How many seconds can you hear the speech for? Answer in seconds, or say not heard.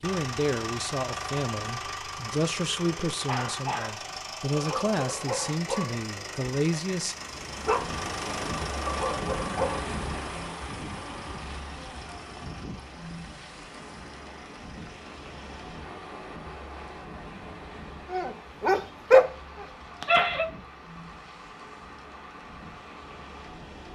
7 s.